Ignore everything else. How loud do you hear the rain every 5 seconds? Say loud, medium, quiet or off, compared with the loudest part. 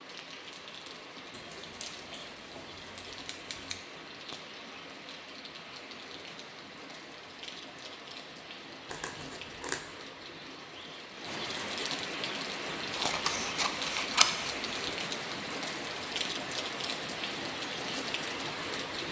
medium, medium, loud, loud.